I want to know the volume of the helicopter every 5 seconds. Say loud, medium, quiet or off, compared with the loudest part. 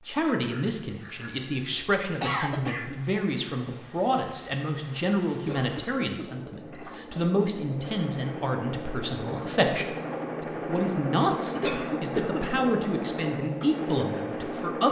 quiet, medium, loud.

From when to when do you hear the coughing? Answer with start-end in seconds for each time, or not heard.
2.2-3.2, 5.5-6.3, 11.6-12.4.